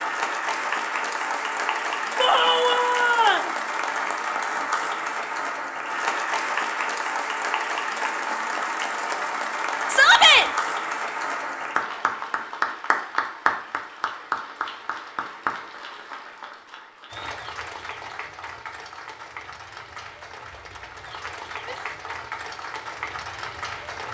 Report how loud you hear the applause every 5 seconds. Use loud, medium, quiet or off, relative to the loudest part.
loud, loud, loud, medium, medium.